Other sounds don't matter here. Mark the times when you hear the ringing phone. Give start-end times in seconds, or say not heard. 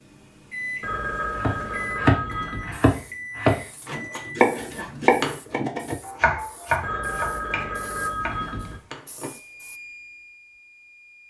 0.8-2.8, 6.8-8.8.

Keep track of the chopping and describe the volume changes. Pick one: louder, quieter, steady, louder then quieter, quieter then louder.
quieter.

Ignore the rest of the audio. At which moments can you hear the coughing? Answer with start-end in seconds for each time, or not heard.
not heard.